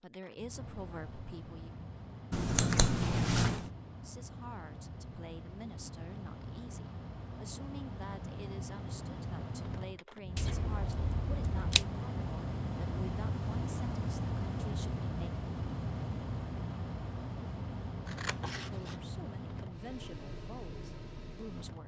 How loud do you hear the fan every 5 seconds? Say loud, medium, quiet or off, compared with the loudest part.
medium, medium, loud, loud, medium.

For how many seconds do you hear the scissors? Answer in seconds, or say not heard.
4 s.